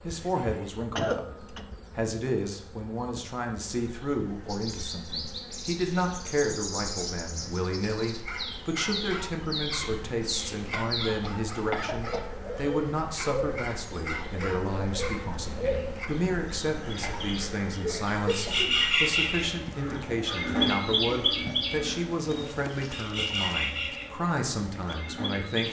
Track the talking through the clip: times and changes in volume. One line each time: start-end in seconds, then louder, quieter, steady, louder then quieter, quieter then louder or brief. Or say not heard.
0.1-25.6 steady.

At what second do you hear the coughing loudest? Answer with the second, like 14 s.
1 s.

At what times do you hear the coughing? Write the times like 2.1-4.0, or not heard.
0.8-1.6, 10.7-12.2, 17.8-18.8.